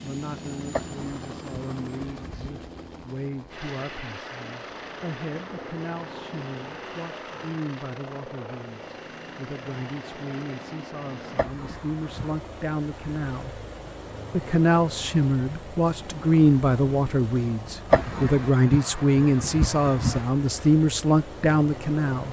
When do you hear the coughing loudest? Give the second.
18 s.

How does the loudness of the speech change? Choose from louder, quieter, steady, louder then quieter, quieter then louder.
louder.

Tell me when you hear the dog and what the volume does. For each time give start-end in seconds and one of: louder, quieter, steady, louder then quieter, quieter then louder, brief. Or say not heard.
not heard.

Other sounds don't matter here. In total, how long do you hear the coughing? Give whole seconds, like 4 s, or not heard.
5 s.